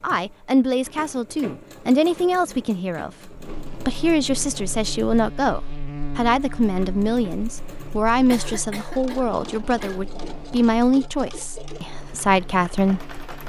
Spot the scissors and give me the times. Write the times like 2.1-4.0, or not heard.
not heard.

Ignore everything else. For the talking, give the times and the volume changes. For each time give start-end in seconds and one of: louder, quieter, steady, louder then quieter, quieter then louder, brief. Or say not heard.
0.0-13.2 steady.